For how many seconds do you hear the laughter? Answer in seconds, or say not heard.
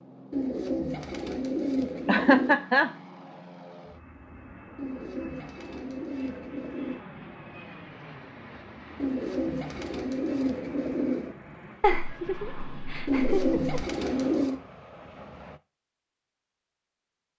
3 s.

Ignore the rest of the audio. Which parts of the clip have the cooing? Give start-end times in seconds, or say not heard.
0.3-2.6, 4.8-7.0, 8.9-11.3, 13.1-14.6.